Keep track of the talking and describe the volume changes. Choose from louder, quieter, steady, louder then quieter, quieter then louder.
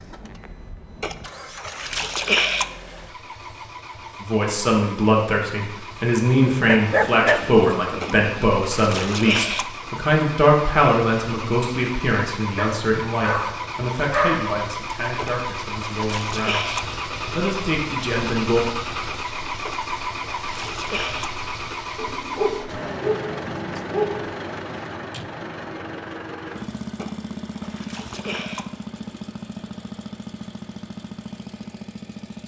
quieter.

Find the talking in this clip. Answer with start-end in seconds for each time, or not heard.
4.2-18.6.